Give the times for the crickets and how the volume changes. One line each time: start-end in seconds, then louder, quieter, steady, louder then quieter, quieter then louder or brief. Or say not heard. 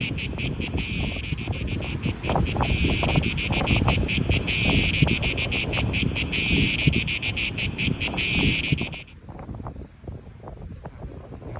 0.0-9.1 louder.